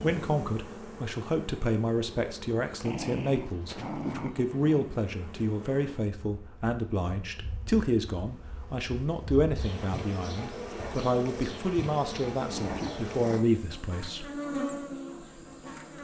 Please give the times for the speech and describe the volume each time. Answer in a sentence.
The speech can be heard from 0.0 to 14.3 s, at a steady volume.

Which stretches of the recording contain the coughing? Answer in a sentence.
The coughing can't be heard in this clip.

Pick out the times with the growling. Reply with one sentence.
You can hear the growling from 2.8 to 4.8 s and from 12.4 to 13.4 s.